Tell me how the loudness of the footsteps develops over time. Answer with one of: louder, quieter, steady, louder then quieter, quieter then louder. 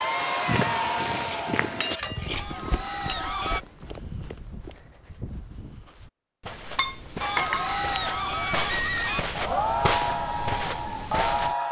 quieter then louder.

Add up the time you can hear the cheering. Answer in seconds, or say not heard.
8 s.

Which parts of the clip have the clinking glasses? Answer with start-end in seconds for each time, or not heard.
1.1-3.1, 6.8-7.8.